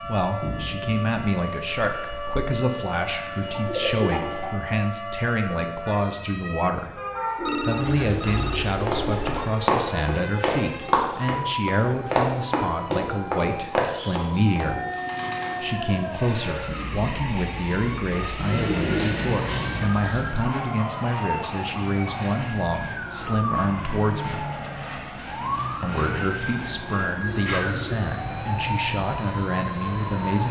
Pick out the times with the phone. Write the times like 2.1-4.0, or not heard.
7.5-8.8.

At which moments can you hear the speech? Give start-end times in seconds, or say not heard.
0.1-7.0, 7.6-14.8, 15.6-24.4, 25.8-30.4.